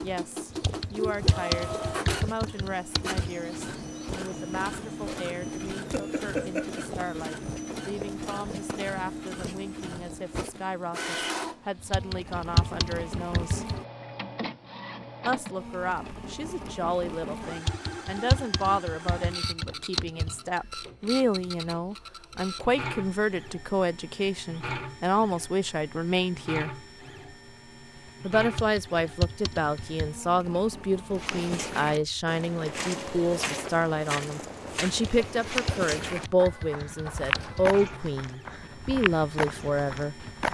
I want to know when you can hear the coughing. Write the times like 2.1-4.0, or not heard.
5.9-6.8.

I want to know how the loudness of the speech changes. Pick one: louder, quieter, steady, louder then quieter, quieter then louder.
louder.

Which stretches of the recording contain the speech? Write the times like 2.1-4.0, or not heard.
0.0-13.7, 15.2-26.8, 28.2-40.2.